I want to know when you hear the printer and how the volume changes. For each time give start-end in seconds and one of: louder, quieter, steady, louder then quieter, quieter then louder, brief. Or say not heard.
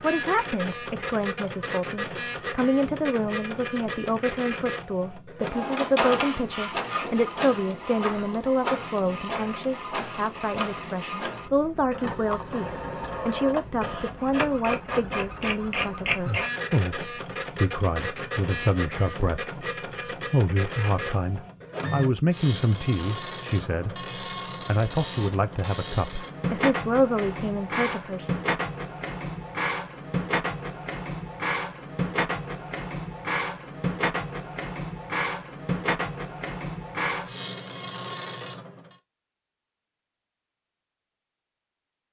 0.0-39.0 steady.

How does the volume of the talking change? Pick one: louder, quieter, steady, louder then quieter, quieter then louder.
steady.